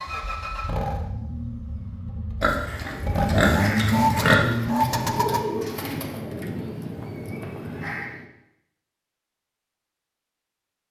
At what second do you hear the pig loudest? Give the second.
4 s.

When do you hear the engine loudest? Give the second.
4 s.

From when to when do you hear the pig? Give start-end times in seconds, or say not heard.
2.4-4.3.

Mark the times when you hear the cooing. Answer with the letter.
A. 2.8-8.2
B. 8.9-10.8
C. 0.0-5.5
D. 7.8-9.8
A.